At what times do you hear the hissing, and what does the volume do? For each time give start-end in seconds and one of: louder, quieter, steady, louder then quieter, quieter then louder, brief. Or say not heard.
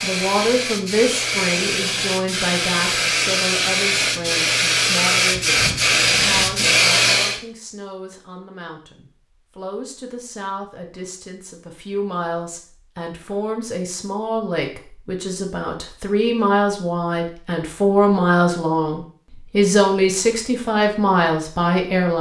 0.0-7.4 louder.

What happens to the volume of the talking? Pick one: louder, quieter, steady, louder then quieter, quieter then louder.
quieter then louder.